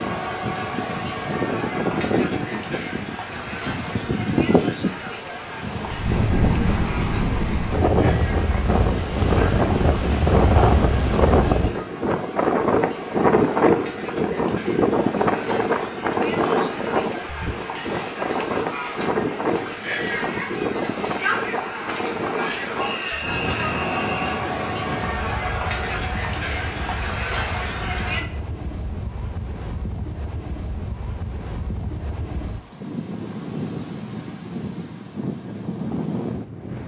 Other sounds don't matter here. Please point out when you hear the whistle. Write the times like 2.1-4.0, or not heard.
22.8-24.4.